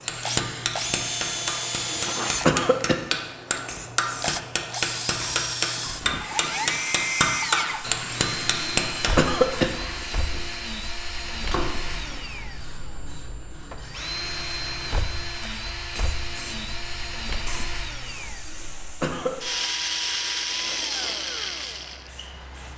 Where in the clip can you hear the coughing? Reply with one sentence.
You can hear the coughing from 1.9 to 3.0 s, from 8.6 to 9.7 s and from 18.4 to 19.4 s.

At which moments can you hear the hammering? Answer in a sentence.
The hammering can be heard from 0.1 to 9.2 s.